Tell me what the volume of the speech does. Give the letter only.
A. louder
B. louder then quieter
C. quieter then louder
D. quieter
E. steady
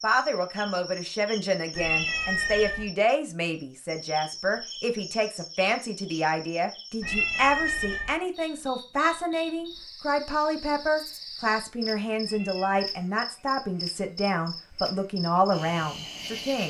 E.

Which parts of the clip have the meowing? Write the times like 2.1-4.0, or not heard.
1.8-2.9, 7.0-8.2, 12.2-12.9.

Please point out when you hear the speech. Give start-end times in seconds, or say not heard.
0.0-16.6.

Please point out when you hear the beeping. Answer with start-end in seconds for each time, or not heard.
not heard.